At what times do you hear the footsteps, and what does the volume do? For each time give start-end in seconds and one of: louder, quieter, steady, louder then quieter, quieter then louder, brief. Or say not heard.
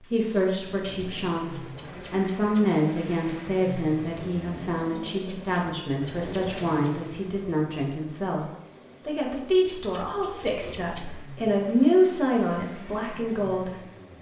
not heard.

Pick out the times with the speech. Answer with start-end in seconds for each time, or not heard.
0.1-8.4, 9.1-13.8.